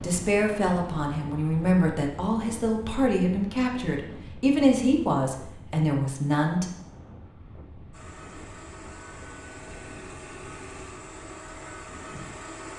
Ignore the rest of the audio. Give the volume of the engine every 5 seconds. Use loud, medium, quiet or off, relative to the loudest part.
off, loud, loud.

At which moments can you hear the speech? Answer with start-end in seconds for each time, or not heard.
0.0-6.7.